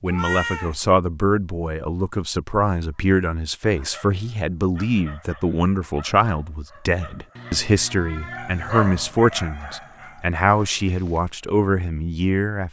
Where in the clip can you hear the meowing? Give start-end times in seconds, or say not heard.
0.1-0.8, 7.3-9.2.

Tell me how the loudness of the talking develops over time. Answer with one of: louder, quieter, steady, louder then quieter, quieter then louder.
steady.